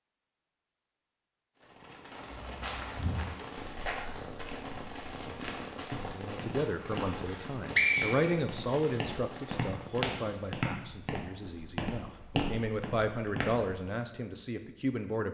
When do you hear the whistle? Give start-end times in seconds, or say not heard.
7.2-8.8.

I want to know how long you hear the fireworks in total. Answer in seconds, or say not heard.
9 s.